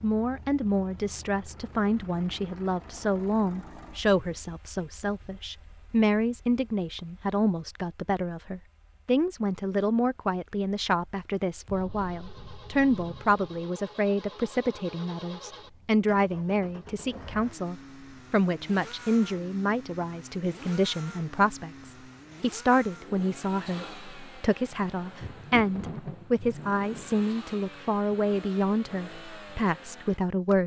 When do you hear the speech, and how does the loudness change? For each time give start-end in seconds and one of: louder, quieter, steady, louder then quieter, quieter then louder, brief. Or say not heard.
0.0-30.6 steady.